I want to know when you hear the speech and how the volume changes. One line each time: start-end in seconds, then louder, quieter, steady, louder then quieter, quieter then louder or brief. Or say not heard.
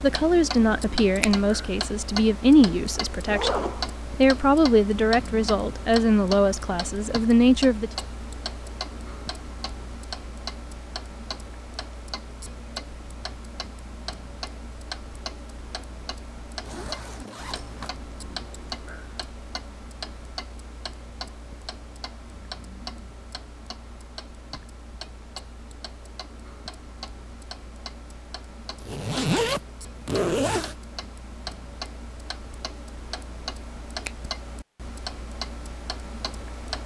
0.0-7.9 steady.